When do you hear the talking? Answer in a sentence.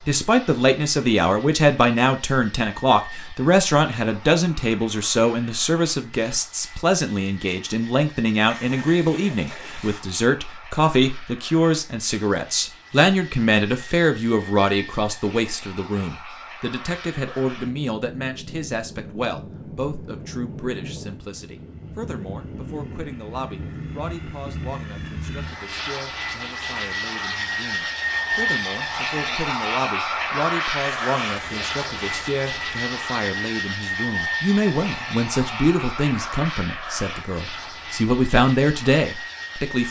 You can hear the talking from 0.1 to 39.8 s.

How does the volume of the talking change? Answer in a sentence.
The volume of the talking goes down, then up.